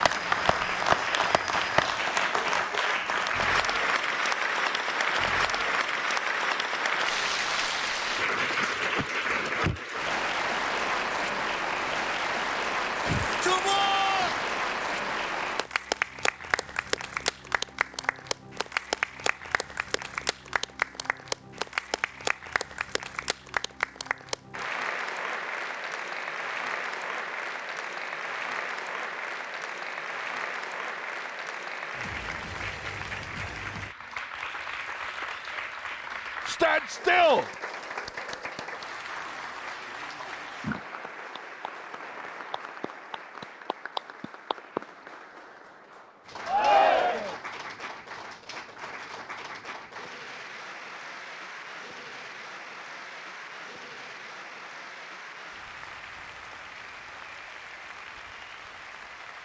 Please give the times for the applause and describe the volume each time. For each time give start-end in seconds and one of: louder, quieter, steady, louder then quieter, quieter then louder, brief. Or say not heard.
0.0-59.4 quieter.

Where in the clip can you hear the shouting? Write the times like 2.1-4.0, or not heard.
13.1-14.3, 36.5-37.5, 46.5-47.4.